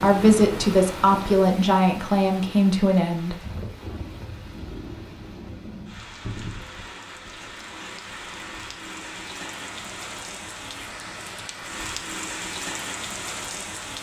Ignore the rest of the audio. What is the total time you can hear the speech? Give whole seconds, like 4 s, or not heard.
3 s.